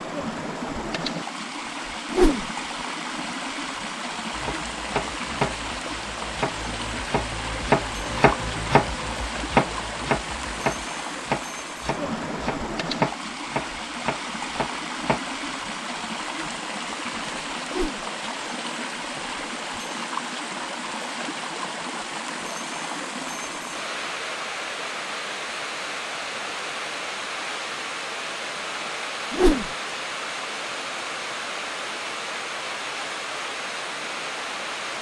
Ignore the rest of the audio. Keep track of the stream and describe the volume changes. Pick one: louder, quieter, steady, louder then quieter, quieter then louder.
steady.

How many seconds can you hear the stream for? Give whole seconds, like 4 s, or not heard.
35 s.